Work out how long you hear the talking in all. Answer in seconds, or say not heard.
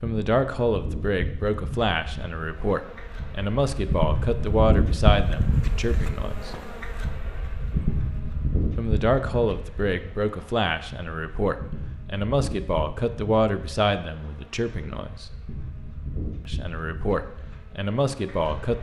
15 s.